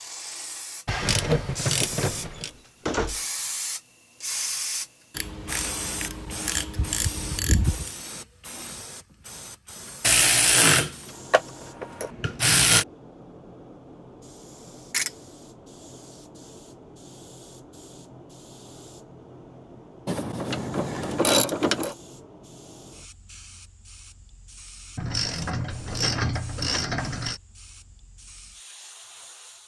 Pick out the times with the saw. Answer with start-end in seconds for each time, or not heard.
not heard.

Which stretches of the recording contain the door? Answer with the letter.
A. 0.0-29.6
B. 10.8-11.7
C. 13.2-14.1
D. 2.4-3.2
D.